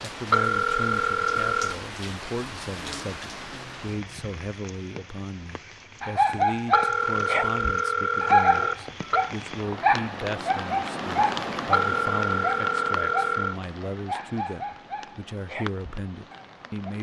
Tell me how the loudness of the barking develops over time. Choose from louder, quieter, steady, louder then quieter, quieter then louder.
quieter.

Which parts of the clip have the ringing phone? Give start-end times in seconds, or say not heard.
0.3-1.8, 6.7-9.3, 11.7-13.6.